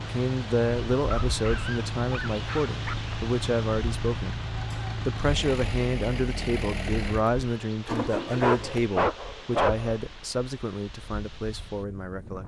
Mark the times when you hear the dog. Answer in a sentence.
The dog can be heard from 0.9 to 3.0 s and from 8.2 to 9.9 s.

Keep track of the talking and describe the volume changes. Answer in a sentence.
The volume of the talking goes down.